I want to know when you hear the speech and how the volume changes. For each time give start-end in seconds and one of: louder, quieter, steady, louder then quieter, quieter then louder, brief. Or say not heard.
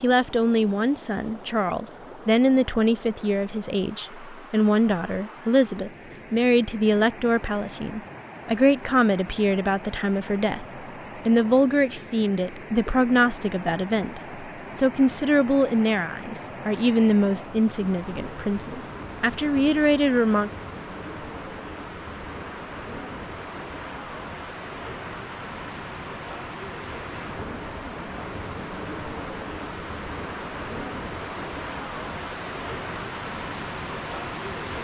0.0-20.5 steady.